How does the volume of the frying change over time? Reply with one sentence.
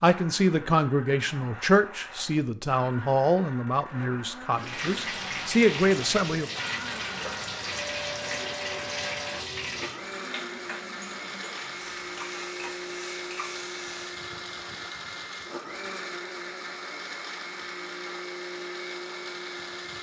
The loudness of the frying goes down.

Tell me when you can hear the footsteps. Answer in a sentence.
You can't hear the footsteps here.